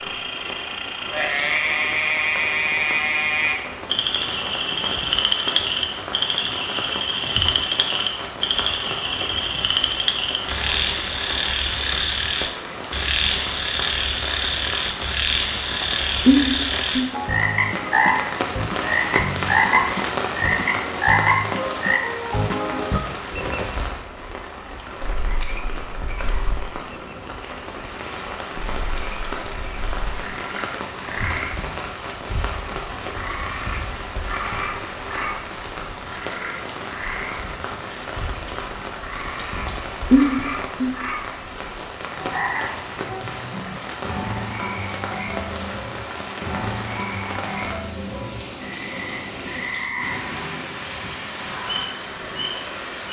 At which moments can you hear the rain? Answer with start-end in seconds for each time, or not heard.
0.0-53.0.